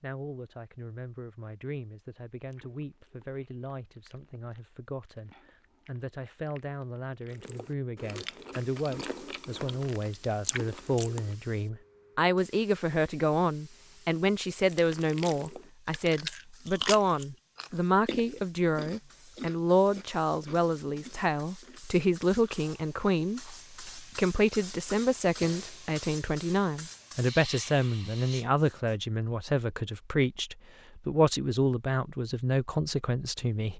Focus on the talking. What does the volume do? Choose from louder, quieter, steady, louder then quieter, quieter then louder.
louder.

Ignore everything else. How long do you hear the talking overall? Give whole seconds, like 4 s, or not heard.
34 s.